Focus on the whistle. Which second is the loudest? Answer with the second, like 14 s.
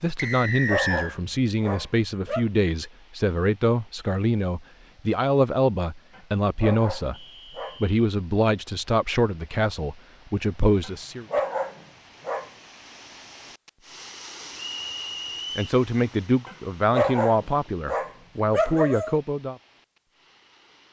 1 s.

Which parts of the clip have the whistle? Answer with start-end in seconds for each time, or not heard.
0.1-1.1, 7.1-7.8, 14.6-15.8.